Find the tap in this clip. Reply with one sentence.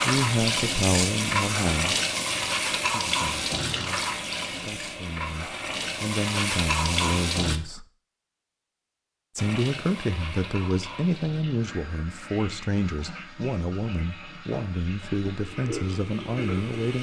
The tap can be heard from 0.0 to 7.6 s and from 9.3 to 16.9 s.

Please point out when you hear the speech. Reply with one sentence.
The speech can be heard from 0.0 to 2.0 s, from 2.9 to 7.8 s and from 9.3 to 16.9 s.